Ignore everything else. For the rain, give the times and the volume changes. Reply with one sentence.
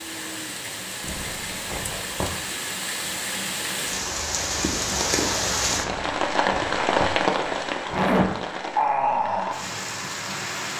You can hear the rain from 0.0 to 10.7 s, getting louder.